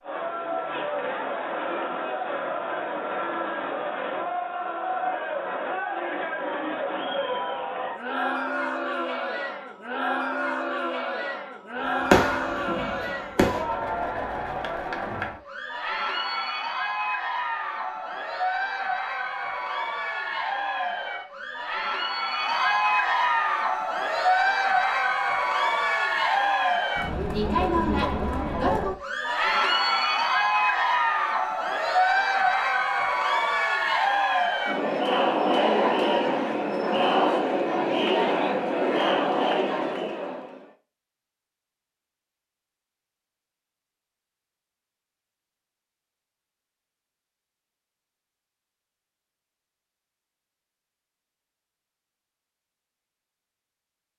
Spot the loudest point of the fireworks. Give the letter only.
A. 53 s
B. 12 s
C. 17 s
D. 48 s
B.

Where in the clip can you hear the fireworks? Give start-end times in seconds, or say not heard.
12.0-13.7.